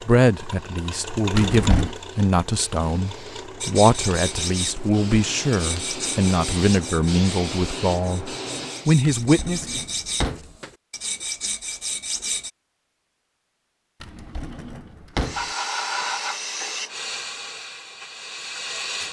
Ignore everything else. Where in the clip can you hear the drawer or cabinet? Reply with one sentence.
You can hear the drawer or cabinet from 1.4 to 1.9 s, from 9.0 to 10.5 s and from 14.0 to 15.4 s.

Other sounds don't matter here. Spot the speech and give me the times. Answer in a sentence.
You can hear the speech from 0.1 to 9.8 s.